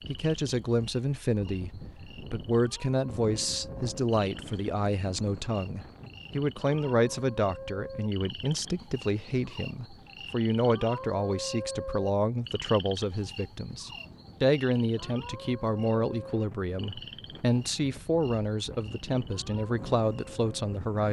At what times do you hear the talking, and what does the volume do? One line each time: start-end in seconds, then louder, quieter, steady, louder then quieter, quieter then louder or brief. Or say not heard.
0.1-21.0 steady.